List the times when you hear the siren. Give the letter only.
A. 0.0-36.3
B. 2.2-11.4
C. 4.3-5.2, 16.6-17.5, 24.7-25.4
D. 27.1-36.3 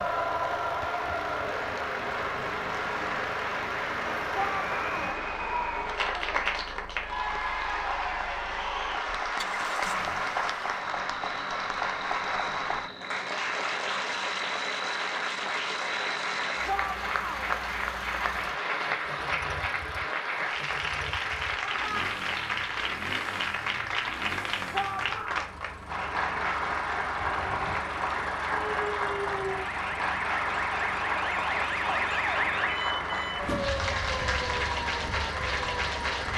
D.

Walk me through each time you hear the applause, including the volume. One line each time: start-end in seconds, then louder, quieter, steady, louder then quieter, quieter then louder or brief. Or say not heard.
0.0-36.3 steady.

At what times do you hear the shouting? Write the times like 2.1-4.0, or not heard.
4.3-5.2, 16.6-17.5, 24.7-25.4.